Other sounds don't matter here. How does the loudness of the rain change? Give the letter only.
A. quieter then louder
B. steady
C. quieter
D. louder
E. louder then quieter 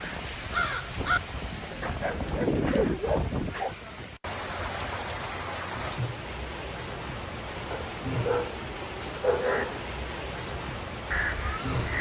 B.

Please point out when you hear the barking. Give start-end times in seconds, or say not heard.
1.8-3.8, 7.7-9.8.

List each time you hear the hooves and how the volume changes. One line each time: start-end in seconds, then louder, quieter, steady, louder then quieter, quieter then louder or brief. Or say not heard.
not heard.